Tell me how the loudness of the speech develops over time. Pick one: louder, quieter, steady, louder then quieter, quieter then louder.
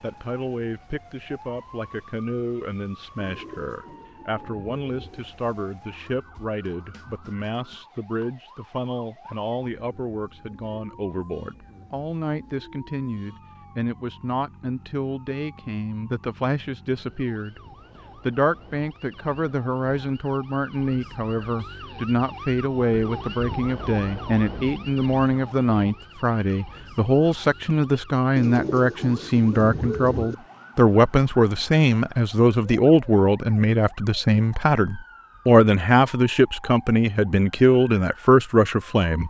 louder.